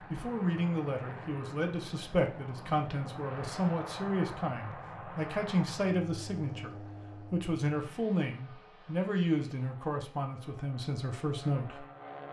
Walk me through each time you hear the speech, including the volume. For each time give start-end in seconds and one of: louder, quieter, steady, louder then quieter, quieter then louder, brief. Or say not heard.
0.1-11.8 steady.